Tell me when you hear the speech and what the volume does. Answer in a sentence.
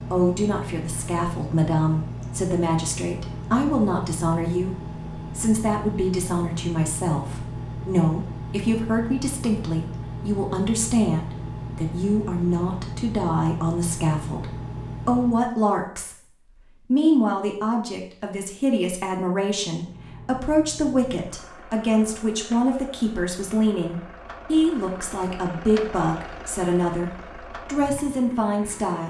You can hear the speech from 0.1 to 29.0 s, at a steady volume.